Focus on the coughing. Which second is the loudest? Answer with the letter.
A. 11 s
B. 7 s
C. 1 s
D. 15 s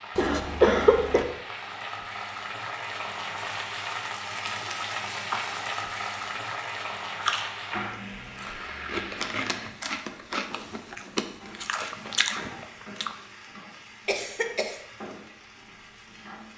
C.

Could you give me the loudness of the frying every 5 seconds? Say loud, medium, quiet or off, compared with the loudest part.
loud, loud, medium, medium.